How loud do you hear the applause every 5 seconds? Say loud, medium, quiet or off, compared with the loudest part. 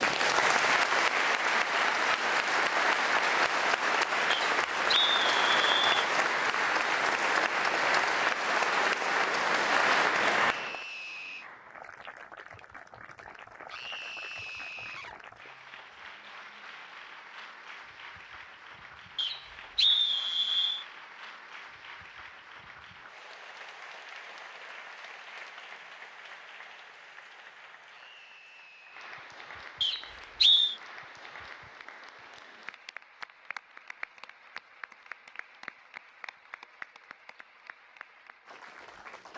loud, loud, medium, quiet, quiet, quiet, quiet, quiet.